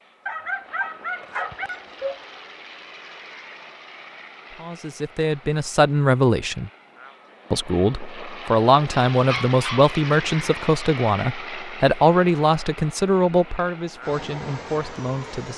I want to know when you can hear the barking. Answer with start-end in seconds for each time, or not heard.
0.2-2.2, 9.1-10.4.